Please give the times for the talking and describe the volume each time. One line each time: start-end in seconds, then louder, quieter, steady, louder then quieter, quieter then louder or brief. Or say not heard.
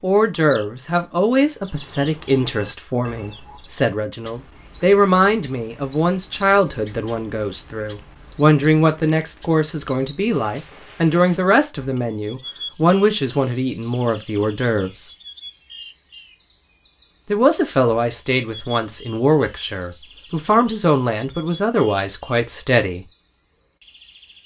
0.0-15.1 steady
17.3-23.1 steady.